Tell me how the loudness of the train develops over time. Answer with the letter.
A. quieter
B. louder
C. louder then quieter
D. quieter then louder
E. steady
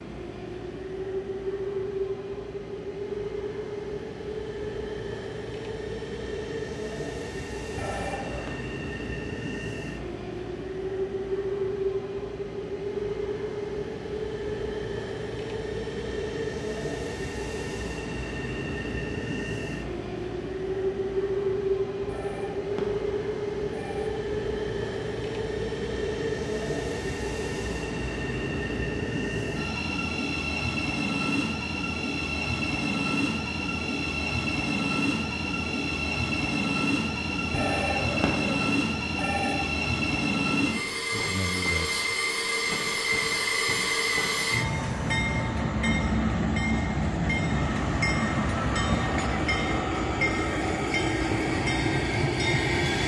B.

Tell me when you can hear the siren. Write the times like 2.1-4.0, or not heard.
not heard.